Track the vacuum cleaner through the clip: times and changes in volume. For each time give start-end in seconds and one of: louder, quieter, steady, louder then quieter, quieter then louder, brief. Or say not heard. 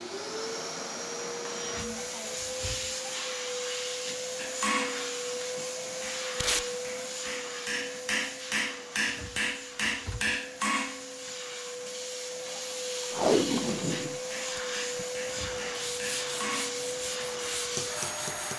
0.0-18.5 quieter then louder.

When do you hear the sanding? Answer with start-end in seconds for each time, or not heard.
15.7-18.5.